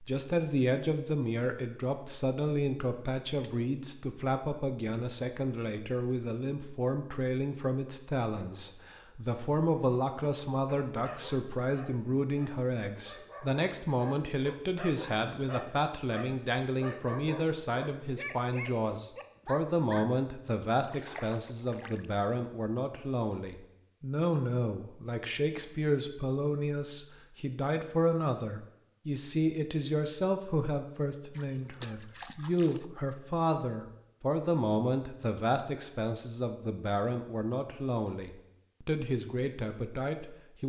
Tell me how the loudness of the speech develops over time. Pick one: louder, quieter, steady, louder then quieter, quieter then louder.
steady.